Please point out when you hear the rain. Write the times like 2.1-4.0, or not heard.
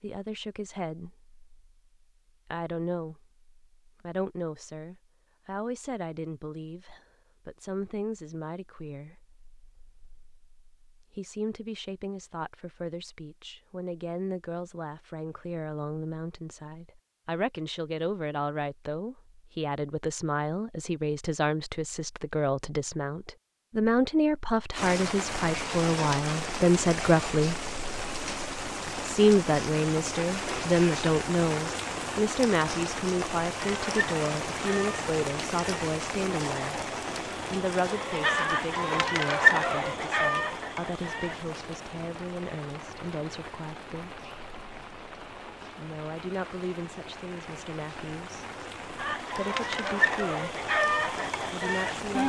24.7-52.2.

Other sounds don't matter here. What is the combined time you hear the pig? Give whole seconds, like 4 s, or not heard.
not heard.